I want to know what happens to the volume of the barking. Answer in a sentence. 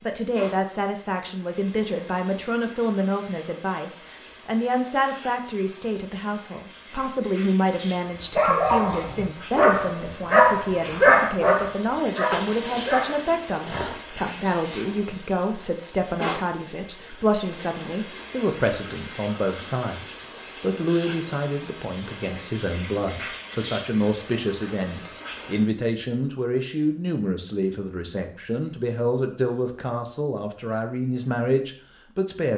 The volume of the barking goes down.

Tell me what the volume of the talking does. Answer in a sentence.
The loudness of the talking stays about the same.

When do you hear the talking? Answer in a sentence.
You can hear the talking from 0.0 to 32.5 s.